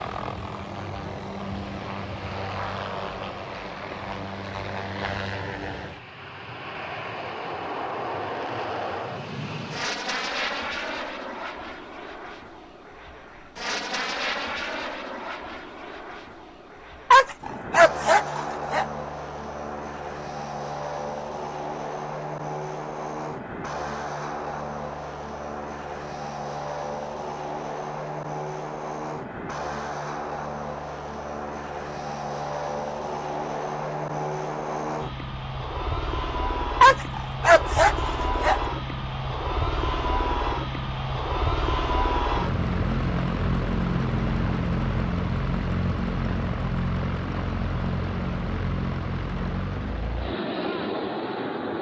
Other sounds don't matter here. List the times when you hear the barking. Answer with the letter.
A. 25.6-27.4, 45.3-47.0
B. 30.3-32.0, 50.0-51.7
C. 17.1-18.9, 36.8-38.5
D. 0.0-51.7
C.